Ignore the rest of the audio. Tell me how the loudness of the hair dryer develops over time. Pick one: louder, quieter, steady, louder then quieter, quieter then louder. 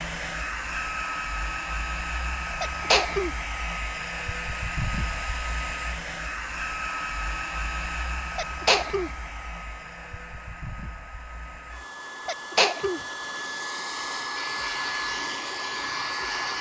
quieter then louder.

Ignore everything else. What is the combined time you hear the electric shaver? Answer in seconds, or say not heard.
2 s.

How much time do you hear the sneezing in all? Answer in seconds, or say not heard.
2 s.